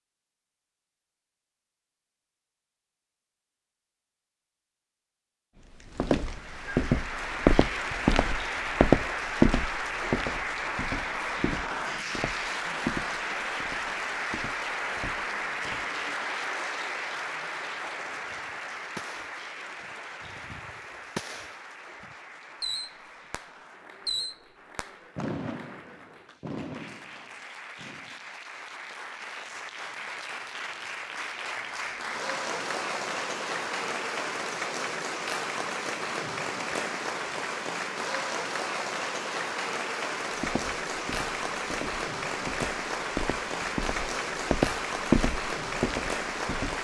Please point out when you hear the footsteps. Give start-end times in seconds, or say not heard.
6.0-15.8, 40.4-46.8.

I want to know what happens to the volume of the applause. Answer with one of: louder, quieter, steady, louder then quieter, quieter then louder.
quieter then louder.